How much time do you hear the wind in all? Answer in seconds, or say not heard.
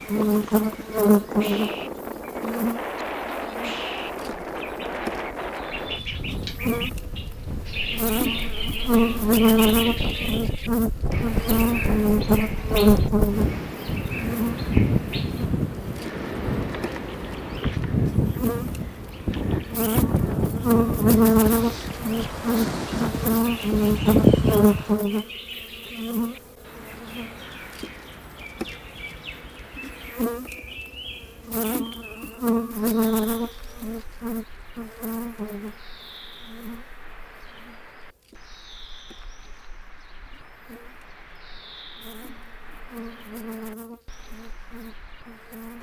25 s.